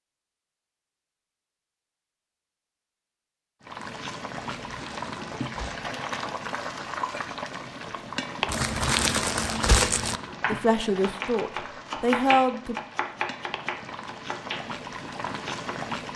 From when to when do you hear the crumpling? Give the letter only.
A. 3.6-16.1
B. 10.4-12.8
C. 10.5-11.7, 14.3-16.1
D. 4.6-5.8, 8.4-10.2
D.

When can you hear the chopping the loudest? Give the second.
12 s.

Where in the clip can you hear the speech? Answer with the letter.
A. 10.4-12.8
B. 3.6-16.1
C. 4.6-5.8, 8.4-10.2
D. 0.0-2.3
A.